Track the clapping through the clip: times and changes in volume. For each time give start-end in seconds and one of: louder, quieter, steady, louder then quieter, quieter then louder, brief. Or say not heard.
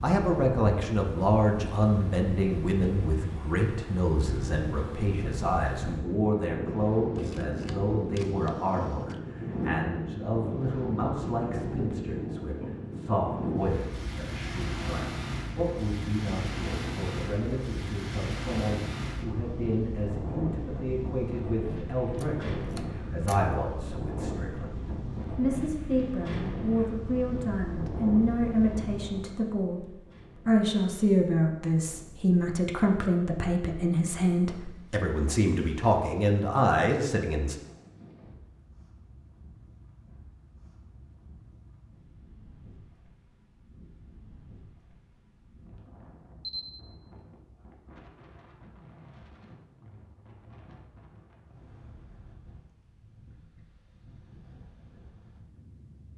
not heard.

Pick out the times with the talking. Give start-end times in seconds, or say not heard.
0.0-37.5.